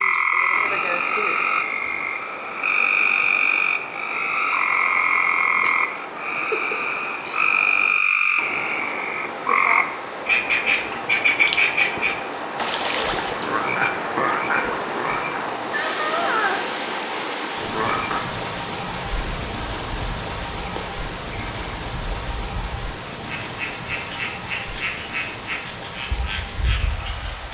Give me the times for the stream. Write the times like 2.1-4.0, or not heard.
0.0-27.5.